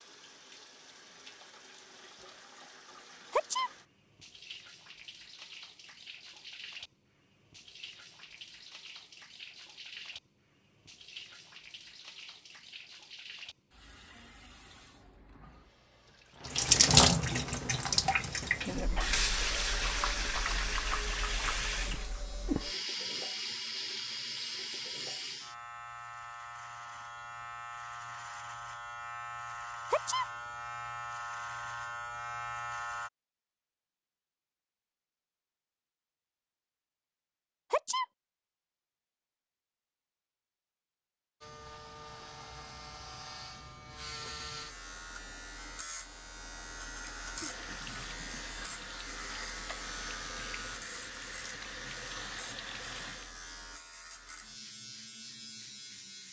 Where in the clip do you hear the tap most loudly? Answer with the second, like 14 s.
17 s.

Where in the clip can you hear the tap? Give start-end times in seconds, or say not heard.
0.0-25.6, 47.3-53.4.